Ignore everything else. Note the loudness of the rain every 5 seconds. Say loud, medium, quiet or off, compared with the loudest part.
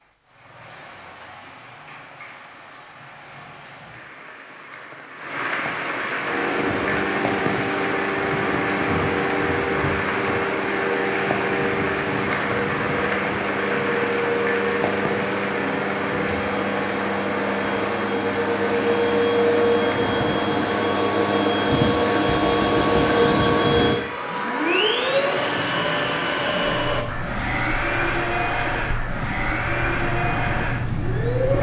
quiet, loud, loud, loud, medium, medium, loud.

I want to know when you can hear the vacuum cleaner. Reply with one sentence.
The vacuum cleaner can be heard from 6.1 to 31.5 s.